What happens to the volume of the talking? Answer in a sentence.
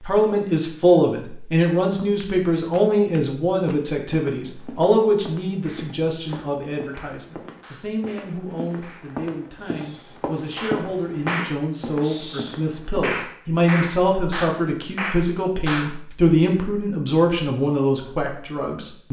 The loudness of the talking goes down, then up.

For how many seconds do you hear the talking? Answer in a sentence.
The talking can be heard for 19 seconds in total.